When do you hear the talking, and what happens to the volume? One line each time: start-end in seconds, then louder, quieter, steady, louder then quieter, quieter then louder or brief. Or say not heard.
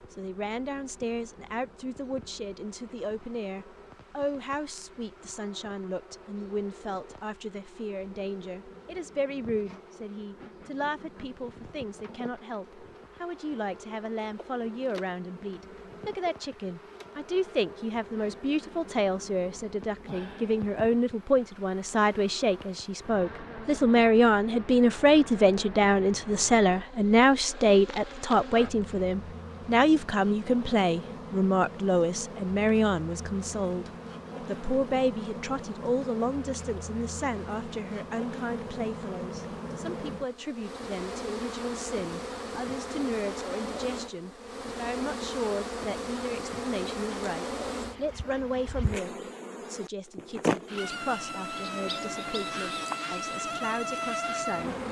0.0-54.8 louder then quieter.